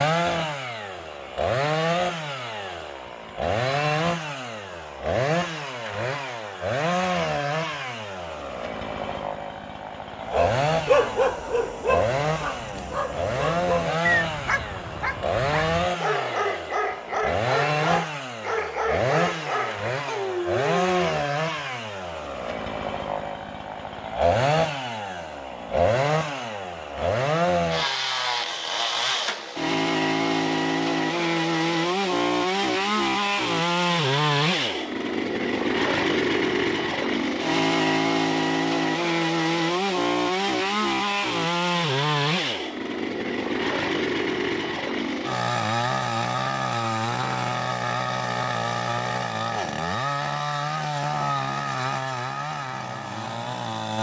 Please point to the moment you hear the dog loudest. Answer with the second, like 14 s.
11 s.